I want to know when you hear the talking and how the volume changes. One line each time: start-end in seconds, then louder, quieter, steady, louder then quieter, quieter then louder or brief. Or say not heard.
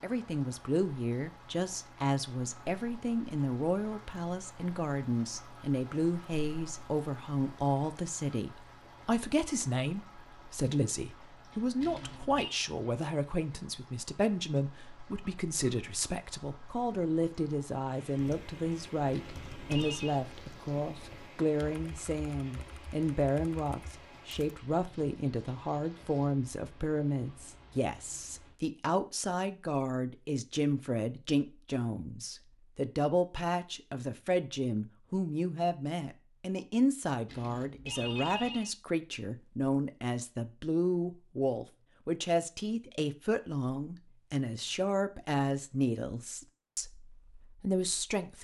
0.0-48.3 steady.